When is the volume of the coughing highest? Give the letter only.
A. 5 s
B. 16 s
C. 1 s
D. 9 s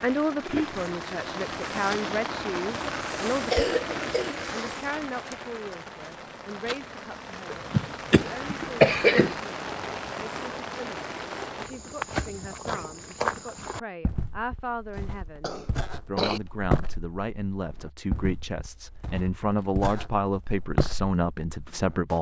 D.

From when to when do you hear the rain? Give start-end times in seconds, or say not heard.
0.0-11.7.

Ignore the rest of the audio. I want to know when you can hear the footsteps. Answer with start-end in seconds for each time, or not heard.
11.6-22.1.